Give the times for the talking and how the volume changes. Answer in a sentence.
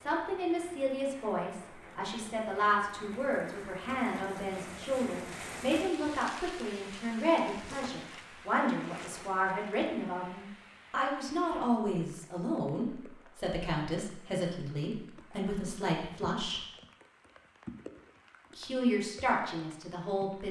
The talking can be heard from 0.1 to 16.6 s, at a steady volume; and briefly from 18.6 to 20.4 s.